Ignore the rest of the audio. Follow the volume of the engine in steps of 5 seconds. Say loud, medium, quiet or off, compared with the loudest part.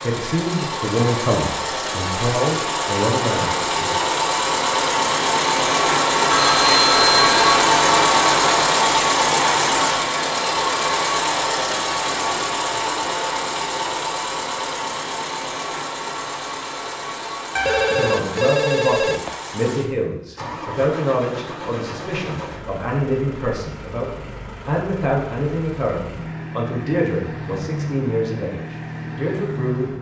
medium, loud, medium, quiet, quiet, quiet.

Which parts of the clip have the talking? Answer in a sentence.
You can hear the talking from 0.0 to 3.9 s and from 17.9 to 29.9 s.